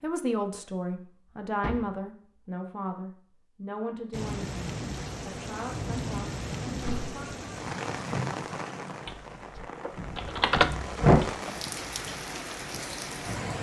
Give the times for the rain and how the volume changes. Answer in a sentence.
The rain can be heard from 4.1 to 13.5 s, at a steady volume.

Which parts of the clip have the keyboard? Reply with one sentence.
You can hear the keyboard from 9.1 to 11.3 s.